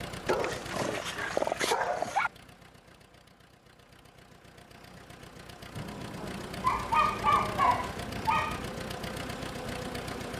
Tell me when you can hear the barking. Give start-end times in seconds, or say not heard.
0.2-2.3, 6.6-8.7.